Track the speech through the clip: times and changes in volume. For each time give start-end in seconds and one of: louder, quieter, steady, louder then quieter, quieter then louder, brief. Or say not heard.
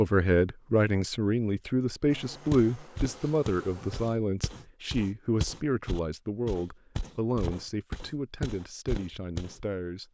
0.0-10.0 quieter.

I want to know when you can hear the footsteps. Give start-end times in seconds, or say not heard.
2.5-9.7.